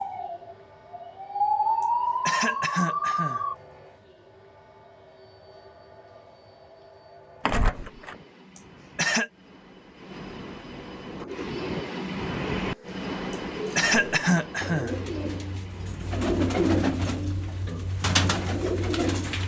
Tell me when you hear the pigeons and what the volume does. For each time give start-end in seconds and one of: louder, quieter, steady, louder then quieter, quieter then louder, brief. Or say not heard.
11.1-19.4 louder.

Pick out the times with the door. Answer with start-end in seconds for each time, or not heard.
7.5-8.2.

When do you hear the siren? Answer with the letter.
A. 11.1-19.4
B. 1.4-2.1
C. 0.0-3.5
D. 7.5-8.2
C.